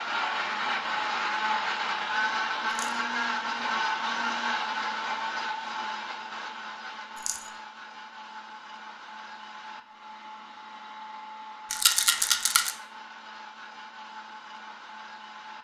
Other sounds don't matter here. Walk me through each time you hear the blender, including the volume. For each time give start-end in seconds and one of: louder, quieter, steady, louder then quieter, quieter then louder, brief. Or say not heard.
0.0-15.5 quieter.